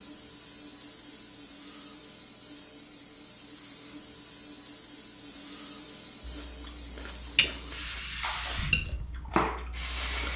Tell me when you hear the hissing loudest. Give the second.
10 s.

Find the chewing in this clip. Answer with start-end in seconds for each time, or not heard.
6.2-10.3.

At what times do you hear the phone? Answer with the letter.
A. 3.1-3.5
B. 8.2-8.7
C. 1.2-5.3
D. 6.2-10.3
B.